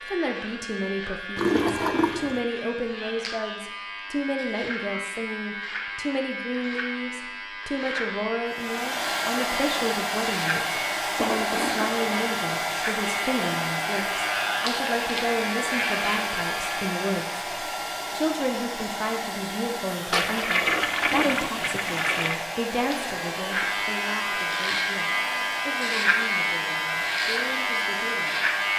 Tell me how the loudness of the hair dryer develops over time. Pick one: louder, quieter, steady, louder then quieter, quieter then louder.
quieter.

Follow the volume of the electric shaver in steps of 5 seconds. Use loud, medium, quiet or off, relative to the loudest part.
medium, medium, medium, medium, loud, loud.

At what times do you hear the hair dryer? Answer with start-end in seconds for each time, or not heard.
8.4-28.7.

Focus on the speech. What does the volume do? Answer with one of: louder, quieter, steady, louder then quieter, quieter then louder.
quieter.